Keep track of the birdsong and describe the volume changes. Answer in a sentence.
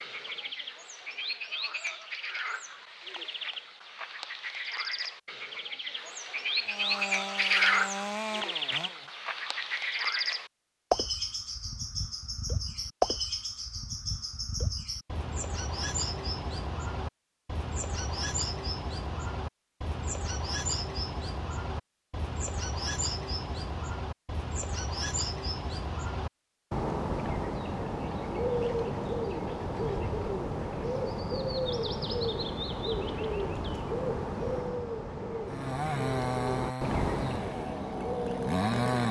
The loudness of the birdsong stays about the same.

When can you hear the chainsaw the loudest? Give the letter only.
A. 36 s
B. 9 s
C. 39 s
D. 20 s
C.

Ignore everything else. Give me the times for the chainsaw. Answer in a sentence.
You can hear the chainsaw from 6.6 to 9.1 s and from 35.4 to 39.0 s.